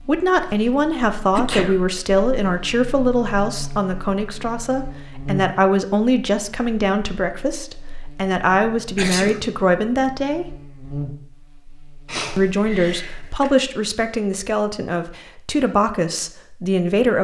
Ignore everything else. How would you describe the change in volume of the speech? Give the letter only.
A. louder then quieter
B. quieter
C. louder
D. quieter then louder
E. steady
E.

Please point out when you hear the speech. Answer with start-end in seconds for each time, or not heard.
0.0-10.4, 12.3-17.1.